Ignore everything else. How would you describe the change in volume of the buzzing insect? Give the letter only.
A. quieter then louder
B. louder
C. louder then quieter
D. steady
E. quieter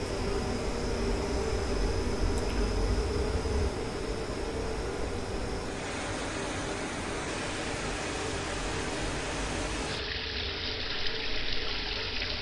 E.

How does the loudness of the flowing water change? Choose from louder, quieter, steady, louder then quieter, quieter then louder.
louder.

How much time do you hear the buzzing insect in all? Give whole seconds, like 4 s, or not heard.
12 s.